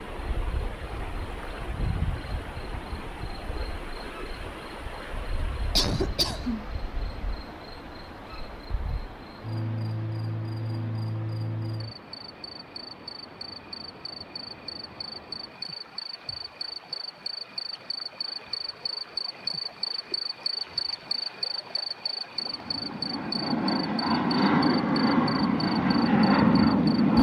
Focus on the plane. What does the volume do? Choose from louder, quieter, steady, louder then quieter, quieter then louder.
louder.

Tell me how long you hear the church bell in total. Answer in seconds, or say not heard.
not heard.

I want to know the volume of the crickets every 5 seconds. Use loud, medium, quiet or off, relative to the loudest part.
medium, medium, loud, loud, loud, medium.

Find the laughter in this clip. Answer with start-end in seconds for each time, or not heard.
5.8-6.7.